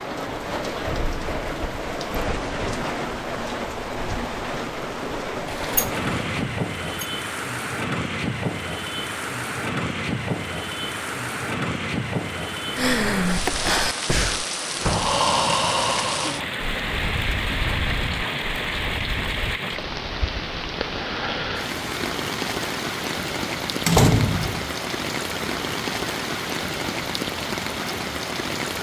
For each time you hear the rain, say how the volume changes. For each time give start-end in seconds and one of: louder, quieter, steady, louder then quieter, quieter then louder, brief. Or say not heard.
0.0-28.7 steady.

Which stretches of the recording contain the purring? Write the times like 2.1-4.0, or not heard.
not heard.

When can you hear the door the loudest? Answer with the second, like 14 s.
24 s.